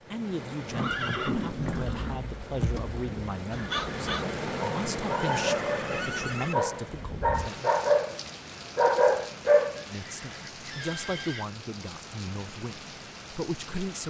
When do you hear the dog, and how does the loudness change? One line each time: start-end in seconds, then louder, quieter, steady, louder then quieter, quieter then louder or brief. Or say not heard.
3.5-9.8 louder.